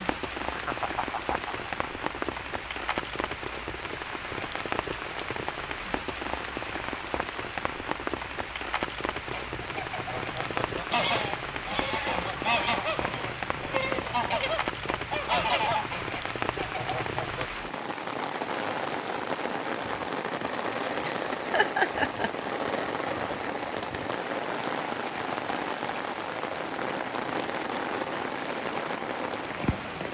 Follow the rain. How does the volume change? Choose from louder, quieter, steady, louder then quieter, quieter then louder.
steady.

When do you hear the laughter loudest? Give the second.
22 s.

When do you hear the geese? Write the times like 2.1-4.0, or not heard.
9.3-17.5.